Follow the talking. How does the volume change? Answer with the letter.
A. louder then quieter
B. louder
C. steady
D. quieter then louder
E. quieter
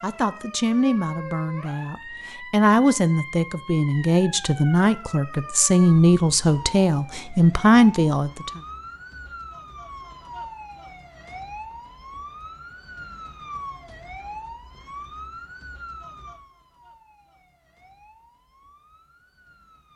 B.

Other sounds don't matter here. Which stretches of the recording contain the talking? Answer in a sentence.
You can hear the talking from 0.0 to 8.6 s.